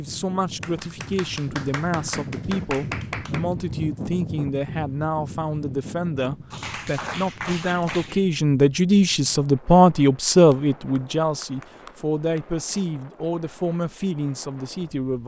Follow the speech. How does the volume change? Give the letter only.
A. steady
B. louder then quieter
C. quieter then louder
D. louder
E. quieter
B.